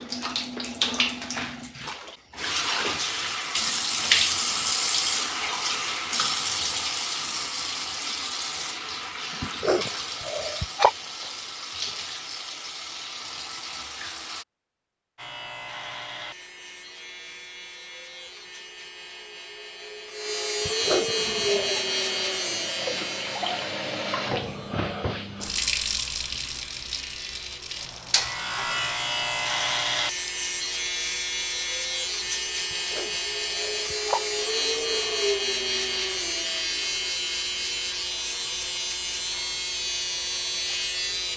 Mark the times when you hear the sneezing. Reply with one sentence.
The sneezing can be heard from 9.4 to 10.9 s, from 20.6 to 21.8 s and from 32.7 to 34.2 s.